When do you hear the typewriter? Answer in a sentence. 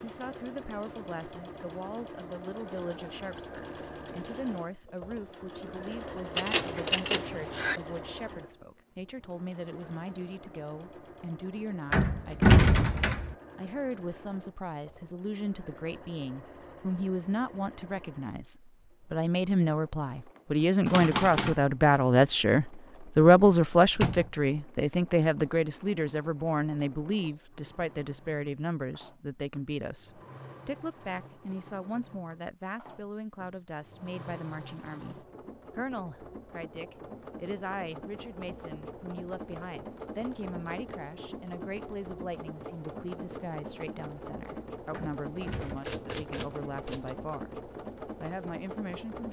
You can hear the typewriter from 6.3 to 7.8 s, from 20.9 to 21.6 s and from 45.8 to 47.1 s.